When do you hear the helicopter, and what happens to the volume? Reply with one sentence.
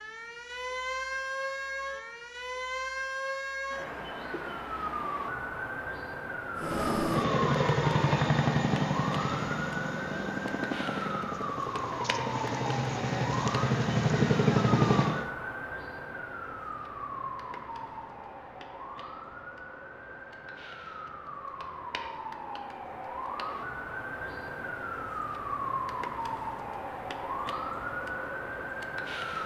The helicopter can be heard from 6.5 to 15.3 s, getting quieter then louder.